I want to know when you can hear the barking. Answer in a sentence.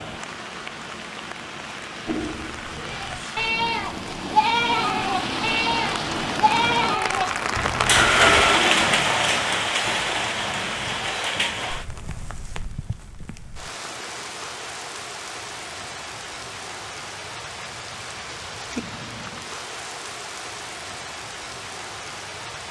You can't hear the barking here.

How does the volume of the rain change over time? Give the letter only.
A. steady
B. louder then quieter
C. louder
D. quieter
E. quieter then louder
B.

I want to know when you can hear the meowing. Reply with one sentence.
The meowing can't be heard in this clip.